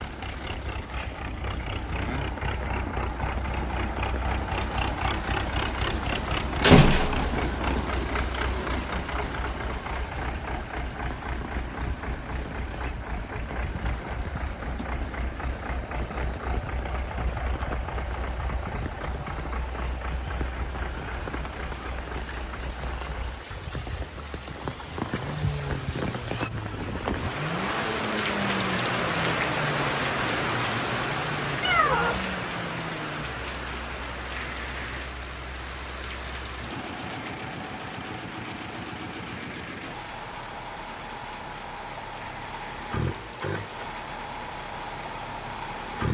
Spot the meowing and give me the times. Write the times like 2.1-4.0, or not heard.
31.6-32.3.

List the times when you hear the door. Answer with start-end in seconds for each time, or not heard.
6.6-7.5.